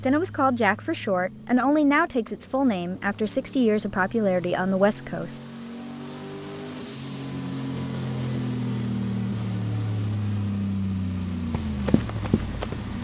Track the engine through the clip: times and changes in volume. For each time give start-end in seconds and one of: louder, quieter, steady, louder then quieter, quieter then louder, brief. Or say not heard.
0.0-12.9 louder.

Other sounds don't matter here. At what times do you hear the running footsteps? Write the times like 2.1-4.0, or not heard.
11.5-12.9.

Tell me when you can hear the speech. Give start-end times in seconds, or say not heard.
0.0-5.4.